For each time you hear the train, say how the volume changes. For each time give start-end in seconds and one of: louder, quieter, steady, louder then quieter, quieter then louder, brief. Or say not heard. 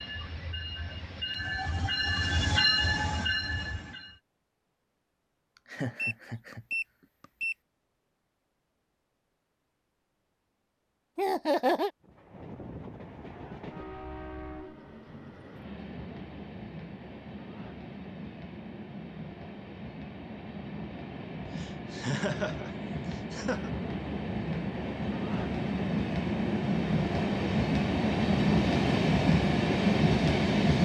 0.0-4.2 louder then quieter
12.0-30.8 louder.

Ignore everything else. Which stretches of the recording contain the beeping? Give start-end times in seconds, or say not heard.
6.0-7.5.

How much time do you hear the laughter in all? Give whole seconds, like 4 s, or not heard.
4 s.